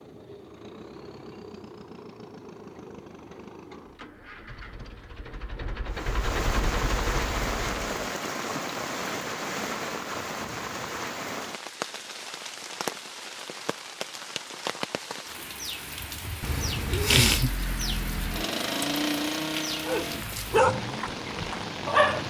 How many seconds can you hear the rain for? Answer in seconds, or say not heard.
16 s.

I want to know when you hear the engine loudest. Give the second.
19 s.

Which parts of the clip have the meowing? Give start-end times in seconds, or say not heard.
16.4-17.5.